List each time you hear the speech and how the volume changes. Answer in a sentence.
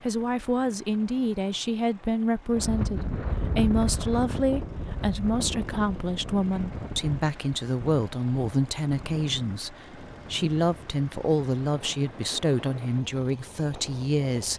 You can hear the speech from 0.0 to 14.5 s, at a steady volume.